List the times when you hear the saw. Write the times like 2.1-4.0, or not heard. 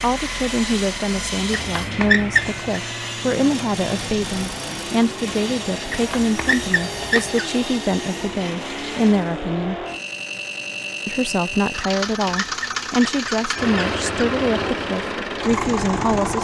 0.0-9.5.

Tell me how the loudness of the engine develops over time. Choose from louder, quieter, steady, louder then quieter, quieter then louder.
louder.